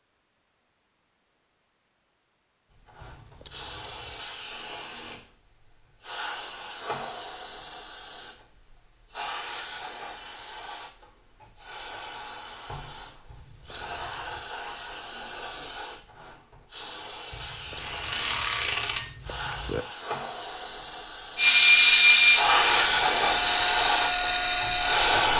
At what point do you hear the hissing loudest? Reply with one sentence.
The loudest moment of the hissing is at 23 seconds.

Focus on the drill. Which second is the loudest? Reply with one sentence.
The volume of the drill peaks at 22 seconds.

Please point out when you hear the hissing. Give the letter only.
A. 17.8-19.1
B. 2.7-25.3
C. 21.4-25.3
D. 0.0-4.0
B.